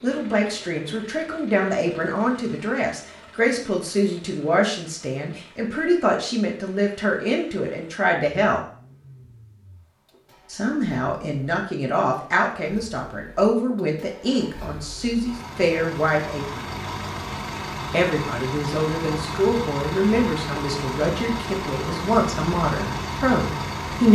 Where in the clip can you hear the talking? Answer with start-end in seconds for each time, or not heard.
0.0-8.6, 10.5-16.6, 17.9-24.0.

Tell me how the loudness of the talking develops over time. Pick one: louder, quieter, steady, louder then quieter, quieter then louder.
steady.